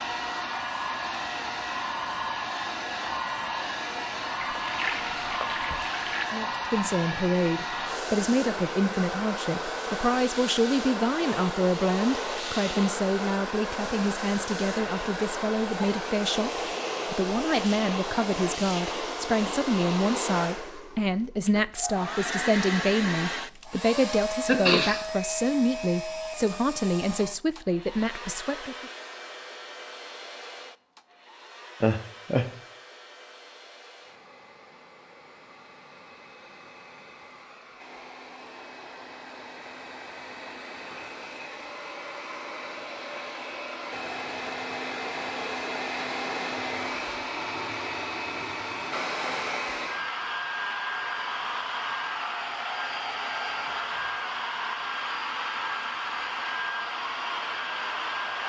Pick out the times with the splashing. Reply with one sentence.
The splashing can be heard from 4.3 to 6.2 s.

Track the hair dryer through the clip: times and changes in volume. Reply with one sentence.
You can hear the hair dryer from 0.0 to 58.4 s, getting quieter then louder.